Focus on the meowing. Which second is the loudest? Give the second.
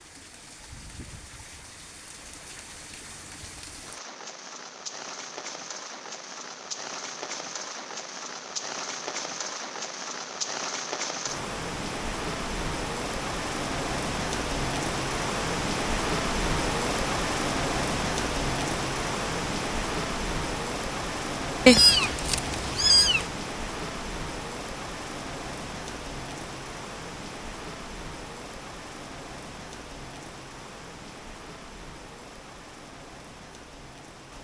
22 s.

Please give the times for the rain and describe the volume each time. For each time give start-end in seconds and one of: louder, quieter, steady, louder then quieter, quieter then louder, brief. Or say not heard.
0.0-34.3 louder then quieter.